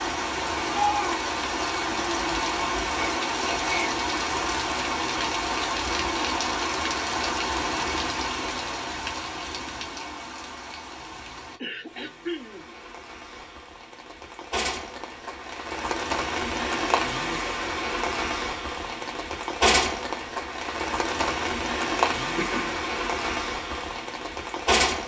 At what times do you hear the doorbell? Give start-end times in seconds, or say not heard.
not heard.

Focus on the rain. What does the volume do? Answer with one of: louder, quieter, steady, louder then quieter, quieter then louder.
quieter then louder.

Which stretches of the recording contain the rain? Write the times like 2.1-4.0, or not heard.
0.0-25.0.